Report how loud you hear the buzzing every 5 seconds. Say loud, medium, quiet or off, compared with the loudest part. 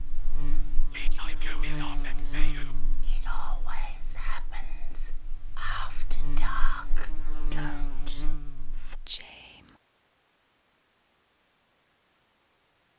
loud, loud, off.